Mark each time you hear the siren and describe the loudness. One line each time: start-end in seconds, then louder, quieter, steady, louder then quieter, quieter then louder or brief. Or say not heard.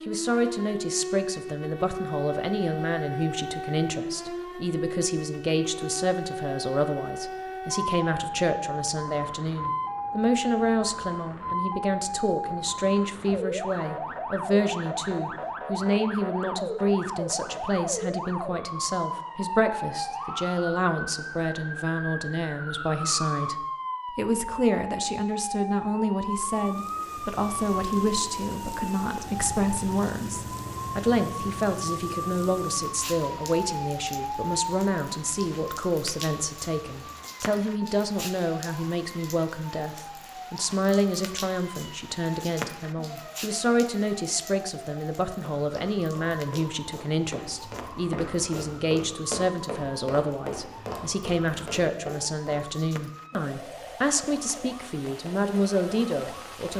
0.0-56.6 quieter.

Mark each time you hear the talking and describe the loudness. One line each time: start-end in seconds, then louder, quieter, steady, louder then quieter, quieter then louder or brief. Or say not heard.
0.1-56.7 steady.